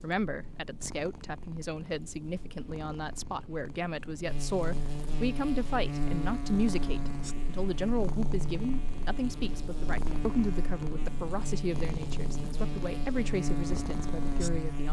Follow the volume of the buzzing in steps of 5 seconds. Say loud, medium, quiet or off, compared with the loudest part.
medium, loud, loud.